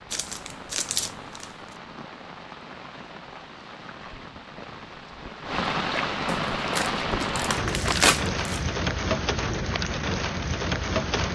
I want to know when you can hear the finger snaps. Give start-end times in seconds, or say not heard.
not heard.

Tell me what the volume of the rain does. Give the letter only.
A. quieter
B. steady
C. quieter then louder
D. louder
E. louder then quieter
D.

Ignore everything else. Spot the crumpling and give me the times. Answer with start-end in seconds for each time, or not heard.
0.1-1.5, 6.5-8.6.